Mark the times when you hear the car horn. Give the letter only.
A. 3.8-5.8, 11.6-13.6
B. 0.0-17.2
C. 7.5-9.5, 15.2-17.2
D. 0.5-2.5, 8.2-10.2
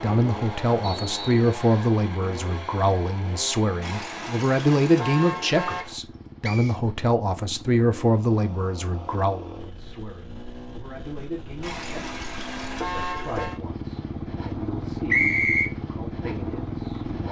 A.